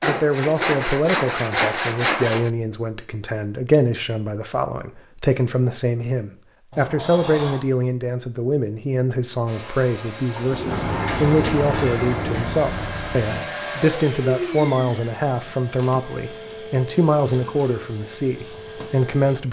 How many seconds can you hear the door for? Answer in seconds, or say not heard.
4 s.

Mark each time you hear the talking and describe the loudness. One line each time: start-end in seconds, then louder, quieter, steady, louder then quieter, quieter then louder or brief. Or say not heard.
0.0-19.4 steady.